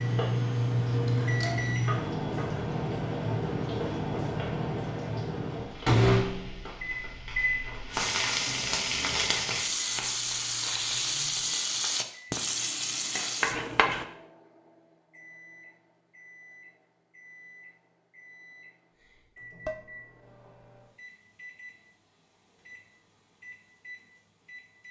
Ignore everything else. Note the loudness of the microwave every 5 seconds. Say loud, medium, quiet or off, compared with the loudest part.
loud, loud, quiet, quiet, quiet.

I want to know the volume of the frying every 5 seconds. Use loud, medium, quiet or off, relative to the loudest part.
quiet, loud, loud, off, off.